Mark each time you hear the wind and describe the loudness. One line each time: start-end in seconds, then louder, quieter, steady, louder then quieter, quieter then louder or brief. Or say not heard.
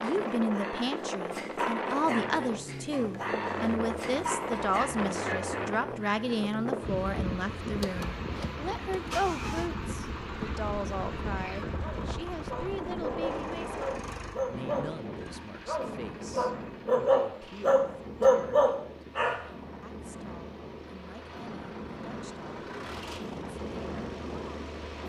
0.0-25.0 quieter.